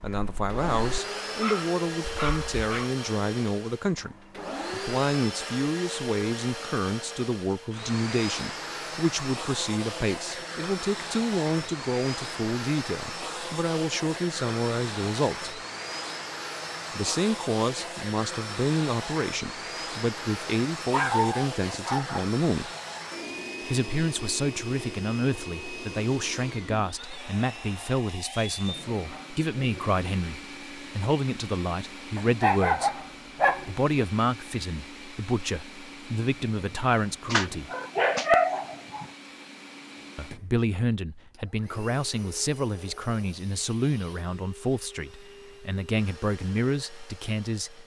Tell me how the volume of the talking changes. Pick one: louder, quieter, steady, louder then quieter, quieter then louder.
steady.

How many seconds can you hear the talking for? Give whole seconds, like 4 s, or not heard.
43 s.